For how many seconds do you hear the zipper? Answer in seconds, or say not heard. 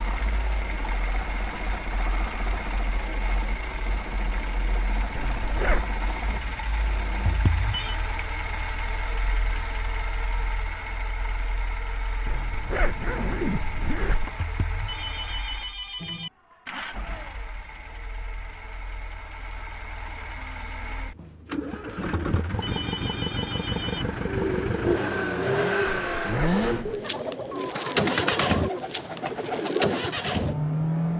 4 s.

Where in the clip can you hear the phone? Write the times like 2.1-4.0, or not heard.
7.2-8.0, 14.3-16.3, 22.1-24.1.